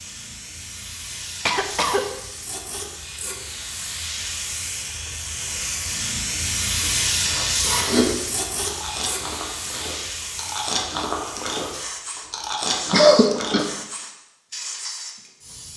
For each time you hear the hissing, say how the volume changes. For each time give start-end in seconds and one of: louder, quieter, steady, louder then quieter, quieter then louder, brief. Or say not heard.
0.0-15.7 louder then quieter.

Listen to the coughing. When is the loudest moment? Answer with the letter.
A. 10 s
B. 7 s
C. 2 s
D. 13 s
D.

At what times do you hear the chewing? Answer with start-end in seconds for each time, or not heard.
6.8-13.7.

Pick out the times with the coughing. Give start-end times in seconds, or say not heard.
1.4-2.0, 12.9-13.7.